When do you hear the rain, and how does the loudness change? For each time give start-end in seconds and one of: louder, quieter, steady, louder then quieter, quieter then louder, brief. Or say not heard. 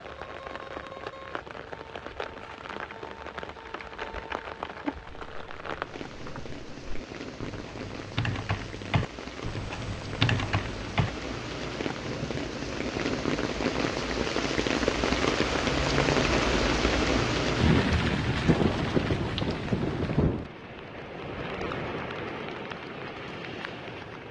0.0-24.2 louder then quieter.